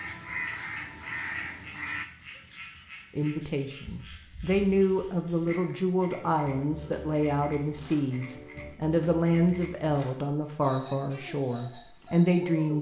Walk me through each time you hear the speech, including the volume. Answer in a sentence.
You can hear the speech from 3.1 to 12.7 s, at a steady volume.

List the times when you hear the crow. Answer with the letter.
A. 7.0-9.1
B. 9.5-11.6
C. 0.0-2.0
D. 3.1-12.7
C.